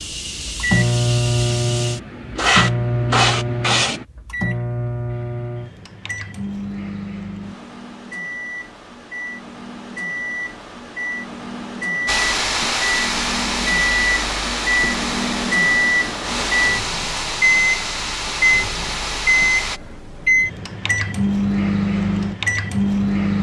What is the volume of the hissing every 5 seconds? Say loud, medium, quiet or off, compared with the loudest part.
loud, off, loud, loud, off.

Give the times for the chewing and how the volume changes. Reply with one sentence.
The chewing can't be heard in this clip.